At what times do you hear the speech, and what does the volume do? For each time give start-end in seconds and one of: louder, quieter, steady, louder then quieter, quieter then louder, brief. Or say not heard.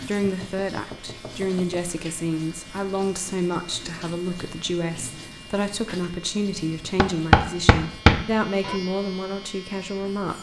0.0-10.3 steady.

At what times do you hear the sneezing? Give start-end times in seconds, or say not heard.
not heard.